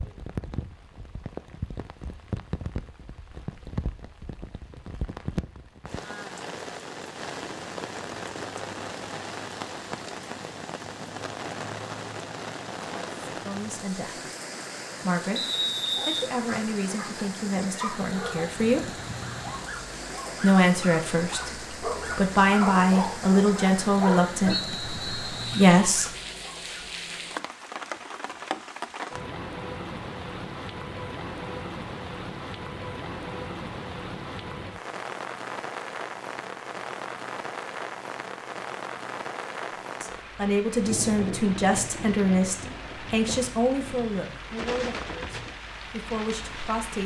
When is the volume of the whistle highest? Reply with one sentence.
The loudest moment of the whistle is at 16 seconds.